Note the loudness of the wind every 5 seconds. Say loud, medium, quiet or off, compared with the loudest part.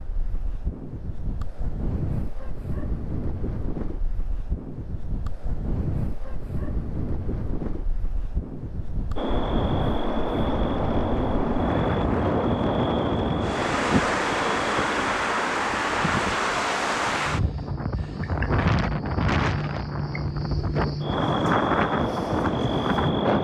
medium, medium, loud, loud, loud.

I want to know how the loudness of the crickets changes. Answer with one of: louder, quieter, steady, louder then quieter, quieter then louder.
quieter then louder.